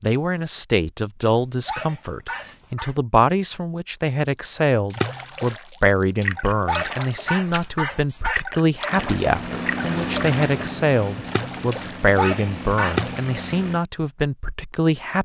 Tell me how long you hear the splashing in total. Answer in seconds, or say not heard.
9 s.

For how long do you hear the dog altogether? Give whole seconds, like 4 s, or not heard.
5 s.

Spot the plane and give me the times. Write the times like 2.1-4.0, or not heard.
8.8-13.8.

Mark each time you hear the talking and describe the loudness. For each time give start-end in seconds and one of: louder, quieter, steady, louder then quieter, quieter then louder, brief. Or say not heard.
0.0-15.2 steady.